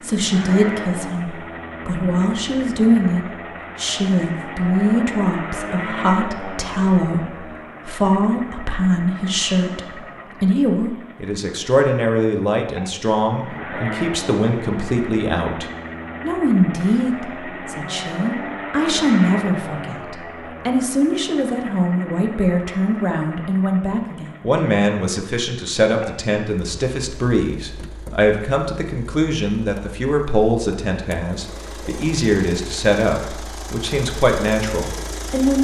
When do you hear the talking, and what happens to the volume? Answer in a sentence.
You can hear the talking from 0.0 to 35.5 s, at a steady volume.